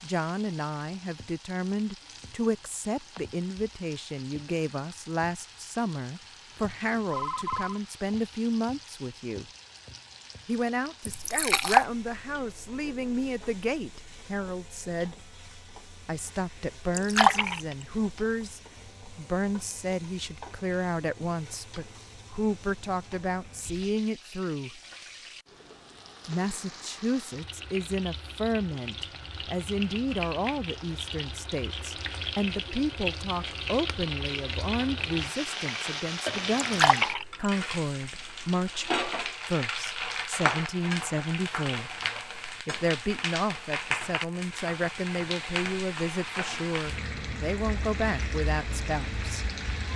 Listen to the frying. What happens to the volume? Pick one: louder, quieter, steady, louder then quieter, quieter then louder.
louder.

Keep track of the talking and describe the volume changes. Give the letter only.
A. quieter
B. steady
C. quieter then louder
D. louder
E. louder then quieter
B.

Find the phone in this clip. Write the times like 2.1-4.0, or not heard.
6.9-7.8.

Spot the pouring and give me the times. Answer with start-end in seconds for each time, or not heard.
11.1-11.8, 16.9-17.8, 36.6-37.5.